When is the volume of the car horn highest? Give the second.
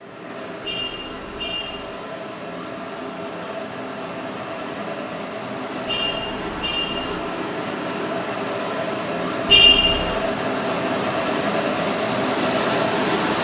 10 s.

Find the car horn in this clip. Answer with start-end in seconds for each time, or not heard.
0.6-1.9, 5.8-7.0, 9.4-10.1.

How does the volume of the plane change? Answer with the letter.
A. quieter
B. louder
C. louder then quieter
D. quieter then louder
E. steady
B.